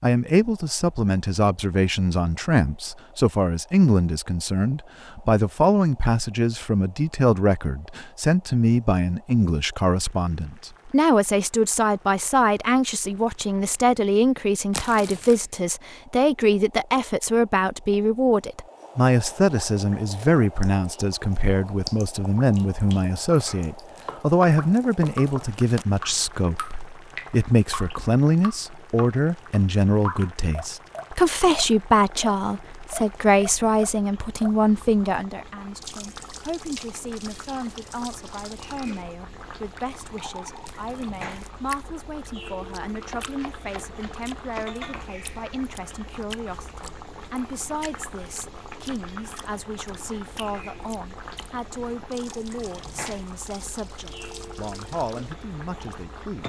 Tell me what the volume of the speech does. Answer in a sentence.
The loudness of the speech goes down.